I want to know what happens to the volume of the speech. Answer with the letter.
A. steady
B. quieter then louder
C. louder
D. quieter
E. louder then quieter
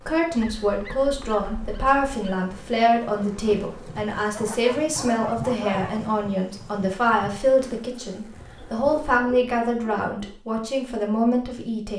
A.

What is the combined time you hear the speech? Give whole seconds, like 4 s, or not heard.
12 s.